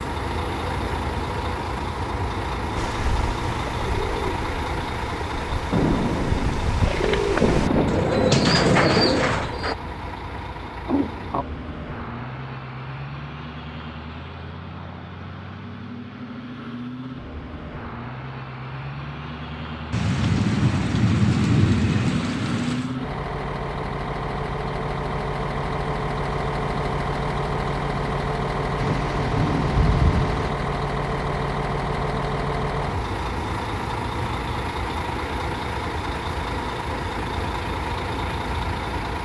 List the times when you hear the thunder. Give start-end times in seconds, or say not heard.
5.7-9.5, 19.9-22.9, 28.8-30.5.